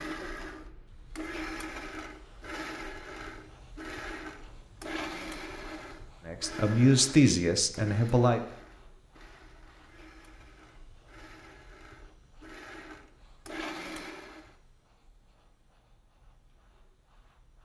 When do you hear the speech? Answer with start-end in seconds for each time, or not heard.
6.2-8.4.